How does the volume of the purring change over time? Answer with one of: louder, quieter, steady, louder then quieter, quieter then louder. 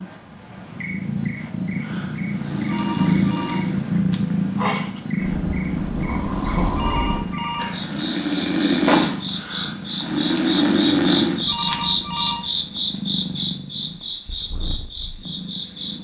quieter.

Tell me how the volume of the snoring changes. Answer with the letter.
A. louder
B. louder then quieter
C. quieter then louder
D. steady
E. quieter
A.